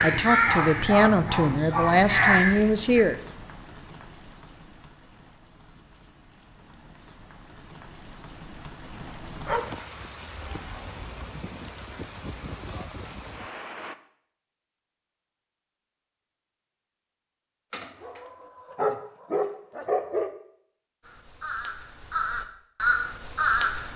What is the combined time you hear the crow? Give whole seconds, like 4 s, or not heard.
6 s.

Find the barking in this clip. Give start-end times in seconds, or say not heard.
0.5-2.5, 9.4-10.6, 17.7-20.3.